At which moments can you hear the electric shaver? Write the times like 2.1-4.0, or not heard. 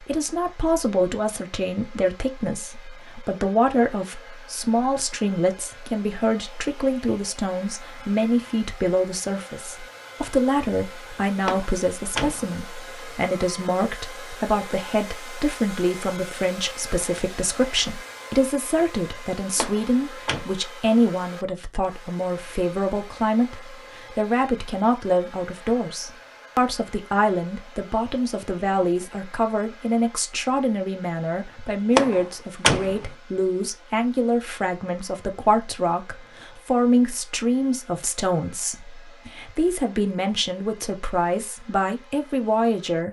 not heard.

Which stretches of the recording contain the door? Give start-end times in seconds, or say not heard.
11.4-12.6, 19.6-20.4, 31.9-33.0.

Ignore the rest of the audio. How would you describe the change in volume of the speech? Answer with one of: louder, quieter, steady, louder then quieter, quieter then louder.
steady.